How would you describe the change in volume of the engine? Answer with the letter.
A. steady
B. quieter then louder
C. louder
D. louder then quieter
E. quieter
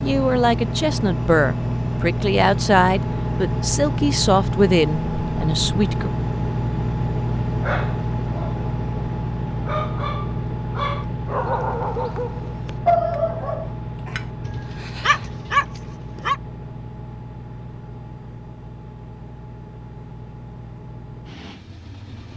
E.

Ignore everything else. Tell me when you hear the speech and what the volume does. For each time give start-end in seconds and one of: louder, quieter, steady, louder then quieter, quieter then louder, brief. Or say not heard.
0.0-6.1 steady.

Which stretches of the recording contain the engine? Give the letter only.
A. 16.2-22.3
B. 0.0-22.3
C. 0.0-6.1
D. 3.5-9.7
B.